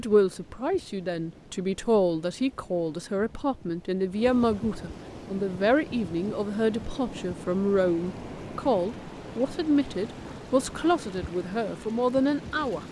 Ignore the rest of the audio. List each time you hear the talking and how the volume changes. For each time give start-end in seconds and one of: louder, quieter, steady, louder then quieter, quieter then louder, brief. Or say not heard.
0.0-12.8 steady.